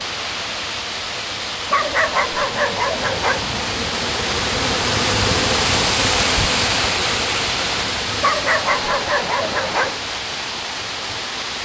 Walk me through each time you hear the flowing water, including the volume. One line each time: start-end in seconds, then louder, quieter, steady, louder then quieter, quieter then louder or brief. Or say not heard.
0.0-11.5 louder then quieter.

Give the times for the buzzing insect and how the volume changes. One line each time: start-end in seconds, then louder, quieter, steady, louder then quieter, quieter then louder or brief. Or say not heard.
0.0-11.5 louder then quieter.